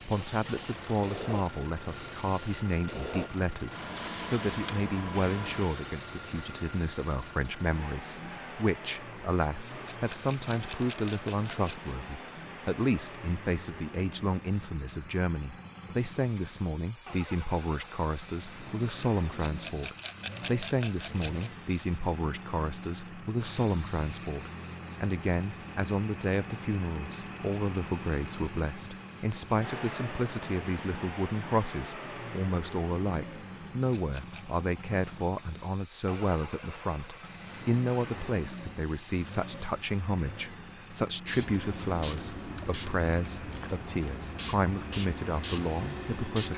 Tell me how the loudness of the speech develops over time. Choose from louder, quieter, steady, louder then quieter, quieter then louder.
steady.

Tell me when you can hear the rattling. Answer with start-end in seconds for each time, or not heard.
9.8-11.9, 19.4-21.5, 33.9-34.6.